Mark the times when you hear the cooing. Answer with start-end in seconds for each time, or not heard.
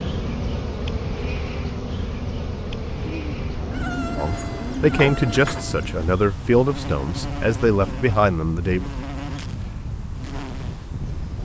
3.0-5.7.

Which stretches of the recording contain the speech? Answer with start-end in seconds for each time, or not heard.
4.2-8.9.